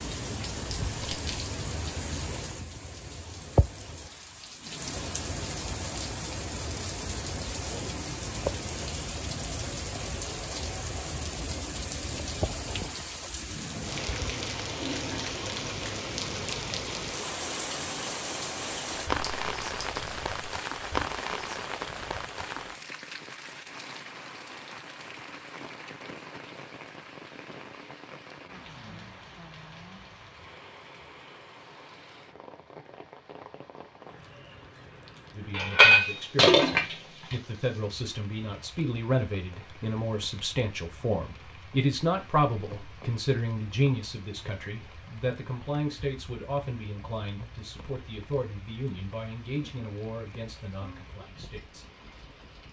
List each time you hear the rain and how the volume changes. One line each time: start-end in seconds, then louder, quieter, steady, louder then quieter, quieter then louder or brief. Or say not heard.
0.0-52.6 quieter.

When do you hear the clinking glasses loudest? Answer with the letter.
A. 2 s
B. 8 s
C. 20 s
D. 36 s
D.